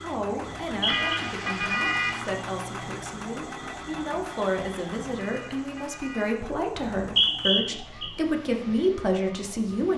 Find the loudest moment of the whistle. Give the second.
7 s.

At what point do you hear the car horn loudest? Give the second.
2 s.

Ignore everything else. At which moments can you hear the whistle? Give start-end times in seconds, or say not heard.
0.4-1.2, 6.8-8.1.